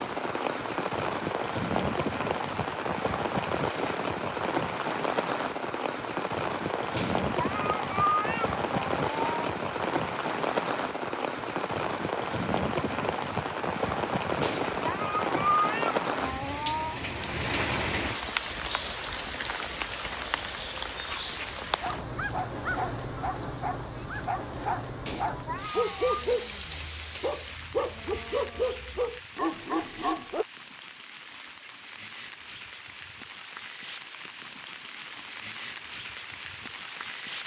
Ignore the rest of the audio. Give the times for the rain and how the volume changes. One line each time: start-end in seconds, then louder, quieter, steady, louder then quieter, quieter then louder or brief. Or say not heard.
0.0-37.4 quieter.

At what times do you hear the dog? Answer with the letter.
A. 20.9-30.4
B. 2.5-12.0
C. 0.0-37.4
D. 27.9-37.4
A.